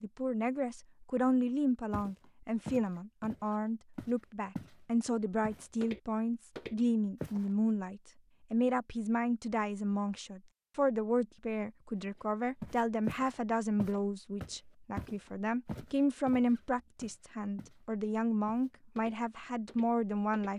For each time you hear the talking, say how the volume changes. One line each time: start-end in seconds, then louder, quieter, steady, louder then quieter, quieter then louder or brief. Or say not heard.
0.0-20.5 steady.